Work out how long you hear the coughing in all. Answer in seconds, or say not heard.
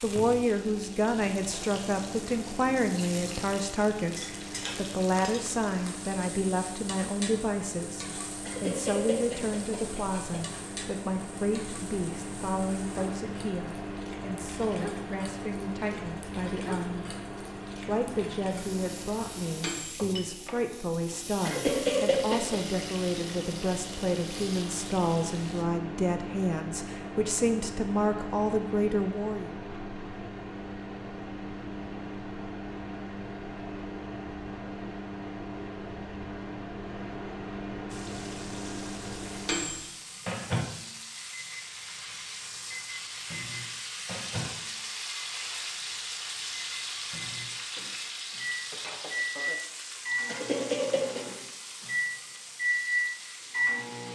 4 s.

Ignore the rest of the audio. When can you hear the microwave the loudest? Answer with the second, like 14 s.
53 s.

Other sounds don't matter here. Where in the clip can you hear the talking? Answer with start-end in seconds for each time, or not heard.
0.0-17.1, 17.9-29.6.